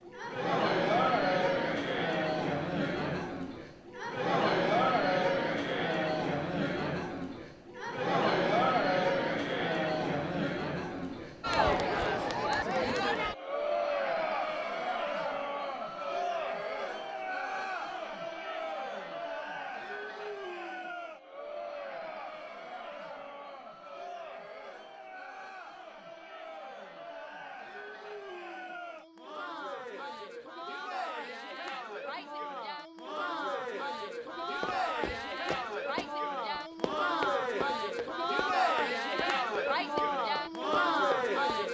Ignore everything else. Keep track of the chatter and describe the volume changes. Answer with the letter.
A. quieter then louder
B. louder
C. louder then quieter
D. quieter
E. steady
A.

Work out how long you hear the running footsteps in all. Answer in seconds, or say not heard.
7 s.